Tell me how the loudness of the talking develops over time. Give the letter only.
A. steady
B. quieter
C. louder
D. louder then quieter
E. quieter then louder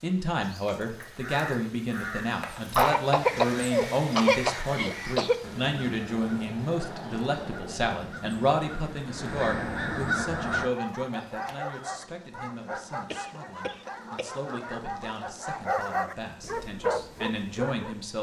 B.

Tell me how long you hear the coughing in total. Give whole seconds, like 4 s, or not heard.
4 s.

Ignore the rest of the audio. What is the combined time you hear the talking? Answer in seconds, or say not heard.
18 s.